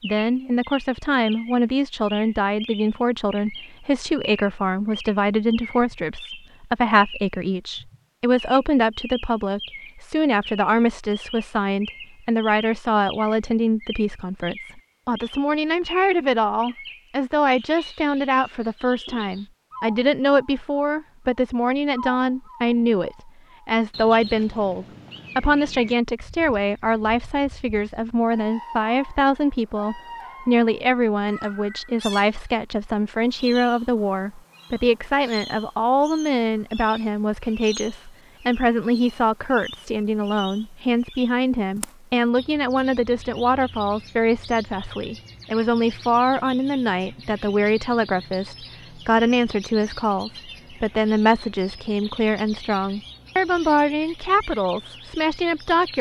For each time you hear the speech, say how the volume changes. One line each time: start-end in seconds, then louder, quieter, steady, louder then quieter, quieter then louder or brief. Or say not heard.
0.0-55.9 steady.